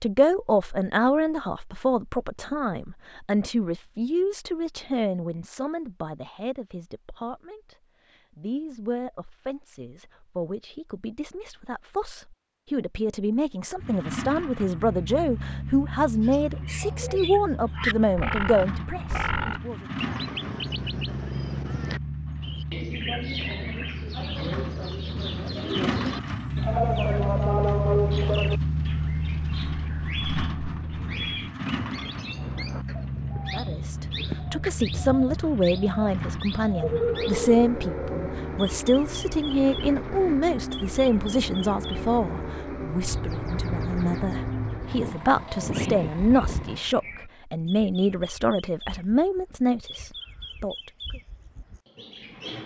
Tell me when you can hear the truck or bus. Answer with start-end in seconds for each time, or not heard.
13.8-46.9.